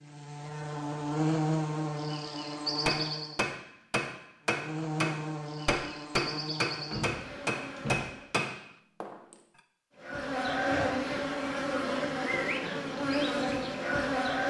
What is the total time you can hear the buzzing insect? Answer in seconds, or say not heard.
12 s.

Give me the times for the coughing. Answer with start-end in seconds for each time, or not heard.
not heard.